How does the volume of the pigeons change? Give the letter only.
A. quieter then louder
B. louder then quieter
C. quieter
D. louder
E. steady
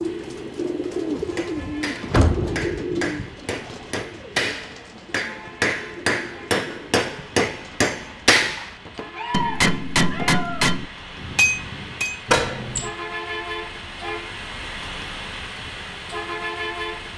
C.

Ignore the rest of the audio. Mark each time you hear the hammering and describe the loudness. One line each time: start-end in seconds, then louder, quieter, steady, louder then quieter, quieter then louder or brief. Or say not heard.
0.9-12.2 louder.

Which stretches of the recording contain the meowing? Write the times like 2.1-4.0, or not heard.
8.6-10.7.